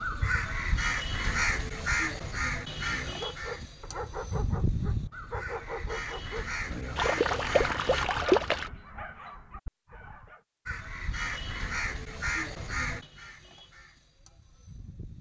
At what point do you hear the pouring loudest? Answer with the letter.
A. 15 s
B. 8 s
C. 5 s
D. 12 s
B.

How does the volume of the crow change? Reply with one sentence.
The loudness of the crow goes down.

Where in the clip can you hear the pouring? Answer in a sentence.
The pouring can be heard from 7.0 to 8.7 s.